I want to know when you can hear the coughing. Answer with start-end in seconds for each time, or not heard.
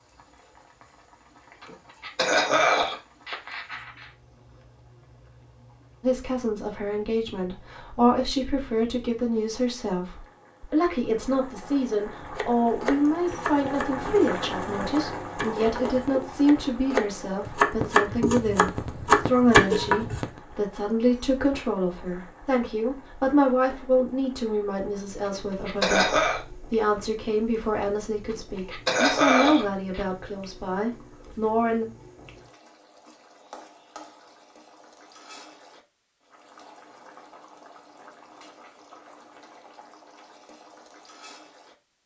1.6-4.0, 25.2-26.4, 28.4-30.1.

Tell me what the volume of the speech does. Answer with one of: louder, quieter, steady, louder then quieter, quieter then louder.
steady.